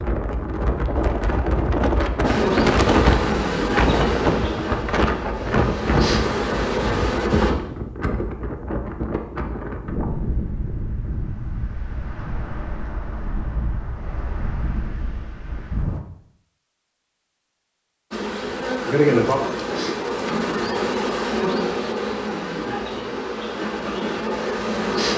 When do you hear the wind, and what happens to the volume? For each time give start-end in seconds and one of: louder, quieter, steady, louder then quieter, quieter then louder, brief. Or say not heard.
0.0-16.0 quieter.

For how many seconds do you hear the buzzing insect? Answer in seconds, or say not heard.
12 s.